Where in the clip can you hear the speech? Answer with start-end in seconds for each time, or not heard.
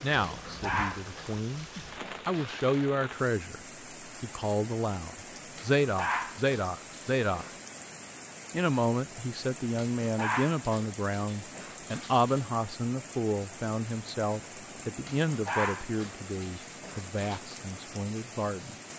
0.0-1.6, 2.2-3.6, 4.2-7.5, 8.5-18.8.